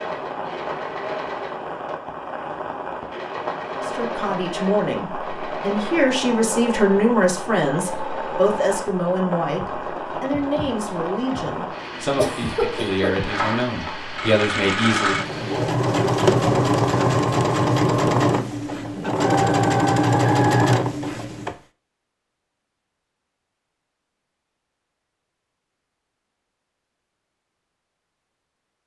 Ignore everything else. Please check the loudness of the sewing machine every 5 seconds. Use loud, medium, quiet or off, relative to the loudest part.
quiet, quiet, medium, loud, loud, off.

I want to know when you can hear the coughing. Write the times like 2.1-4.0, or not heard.
12.2-13.3.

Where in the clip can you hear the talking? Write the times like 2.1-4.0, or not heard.
3.8-15.2.